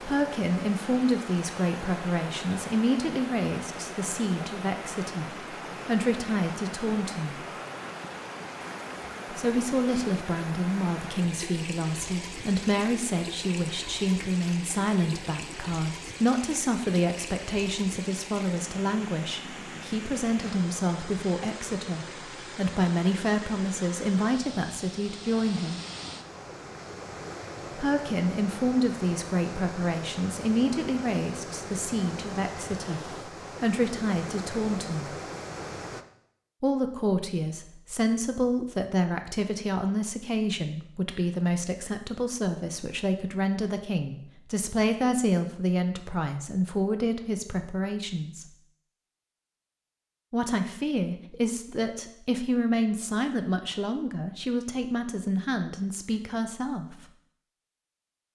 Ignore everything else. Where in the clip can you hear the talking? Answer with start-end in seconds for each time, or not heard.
0.1-7.5, 9.3-25.8, 27.8-33.0, 33.6-35.2, 36.6-48.5, 50.3-57.0.